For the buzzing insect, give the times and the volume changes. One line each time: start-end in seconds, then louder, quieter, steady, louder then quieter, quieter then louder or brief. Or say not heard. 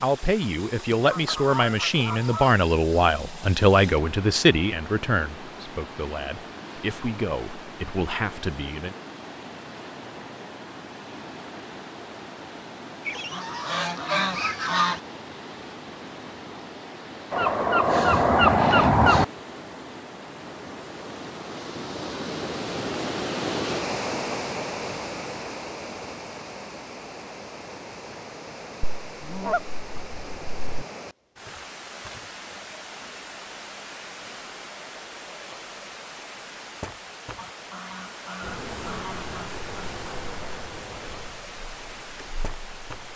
38.4-43.1 quieter.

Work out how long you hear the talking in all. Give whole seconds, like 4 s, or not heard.
9 s.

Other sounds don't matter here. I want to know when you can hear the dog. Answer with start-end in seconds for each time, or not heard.
not heard.